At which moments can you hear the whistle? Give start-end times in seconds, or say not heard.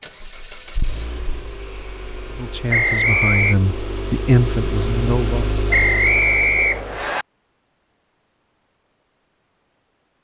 2.7-3.5, 5.7-7.2.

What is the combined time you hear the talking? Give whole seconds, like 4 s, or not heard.
3 s.